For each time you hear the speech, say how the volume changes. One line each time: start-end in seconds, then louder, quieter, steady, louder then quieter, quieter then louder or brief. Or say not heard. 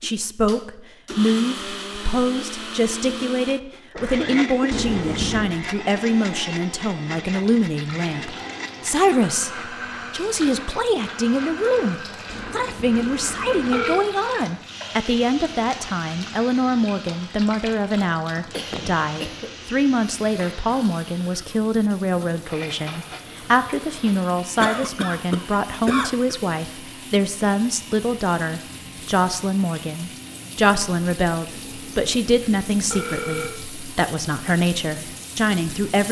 0.0-36.0 steady.